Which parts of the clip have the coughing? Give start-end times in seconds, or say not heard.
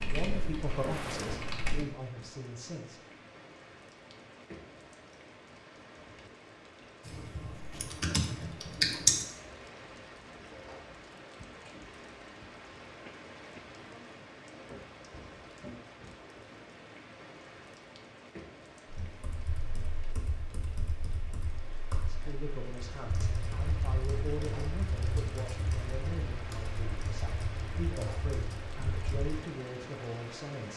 13.1-13.8.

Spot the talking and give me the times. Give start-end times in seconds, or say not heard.
0.0-3.0, 21.9-30.7.